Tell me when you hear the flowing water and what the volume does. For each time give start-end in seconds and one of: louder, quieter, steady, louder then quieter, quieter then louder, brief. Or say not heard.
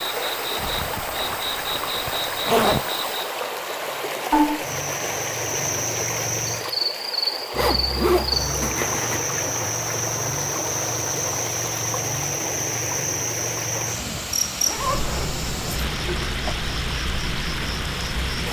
0.0-18.4 steady.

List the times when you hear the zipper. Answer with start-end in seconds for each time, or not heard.
0.6-2.8, 7.5-9.2, 14.7-16.6.